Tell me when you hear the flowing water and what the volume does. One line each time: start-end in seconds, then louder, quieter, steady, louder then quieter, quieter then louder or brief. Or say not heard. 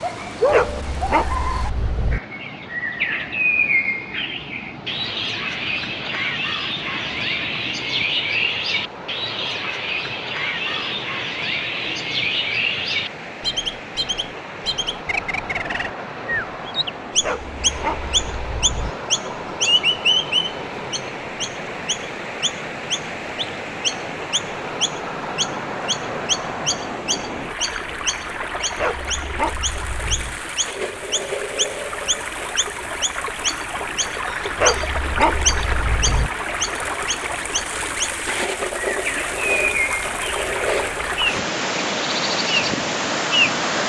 0.0-43.8 louder.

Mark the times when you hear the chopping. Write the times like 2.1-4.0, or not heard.
not heard.